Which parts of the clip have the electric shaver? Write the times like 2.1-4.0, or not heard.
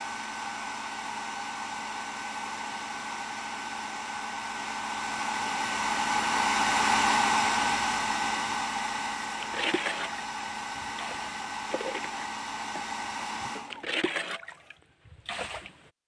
not heard.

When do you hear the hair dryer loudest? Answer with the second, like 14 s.
7 s.